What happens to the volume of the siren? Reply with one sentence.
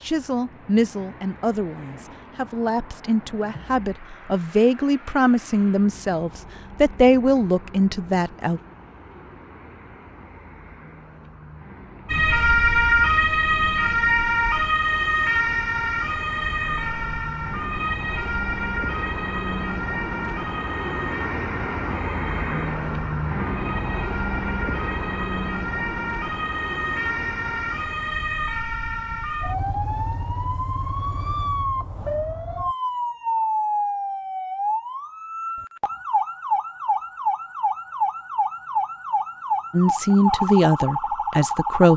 The loudness of the siren goes down, then up.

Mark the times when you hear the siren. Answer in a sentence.
The siren can be heard from 12.1 to 41.9 s.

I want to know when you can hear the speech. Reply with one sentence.
You can hear the speech from 0.1 to 8.6 s and from 39.7 to 41.9 s.